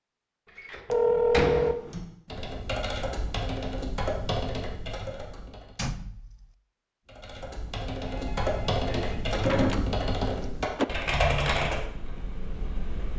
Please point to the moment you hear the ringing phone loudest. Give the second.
1 s.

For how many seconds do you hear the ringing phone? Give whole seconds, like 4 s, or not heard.
2 s.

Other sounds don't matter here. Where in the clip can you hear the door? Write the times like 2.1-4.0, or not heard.
0.6-1.8, 5.8-6.5, 8.8-10.0.